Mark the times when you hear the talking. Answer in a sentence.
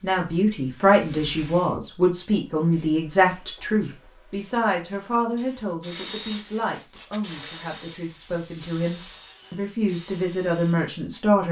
You can hear the talking from 0.0 to 11.4 s.